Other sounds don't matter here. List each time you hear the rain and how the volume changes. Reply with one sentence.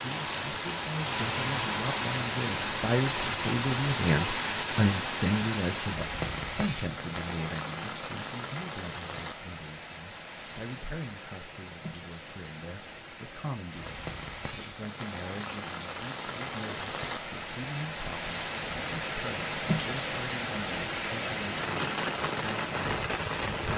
You can hear the rain from 0.0 to 23.7 s, getting quieter then louder.